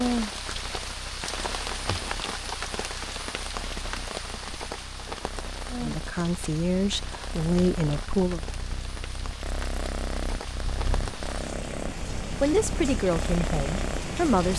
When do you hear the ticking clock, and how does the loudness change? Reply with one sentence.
You can't hear the ticking clock here.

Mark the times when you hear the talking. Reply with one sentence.
The talking can be heard from 5.8 to 8.4 s and from 12.4 to 14.5 s.